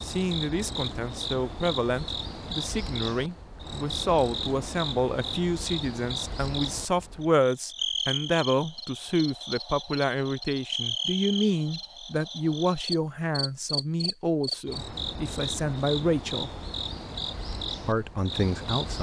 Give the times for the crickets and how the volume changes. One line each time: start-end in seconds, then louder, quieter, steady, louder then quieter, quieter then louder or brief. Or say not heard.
0.0-18.9 steady.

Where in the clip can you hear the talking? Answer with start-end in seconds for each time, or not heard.
0.0-16.5, 17.9-18.9.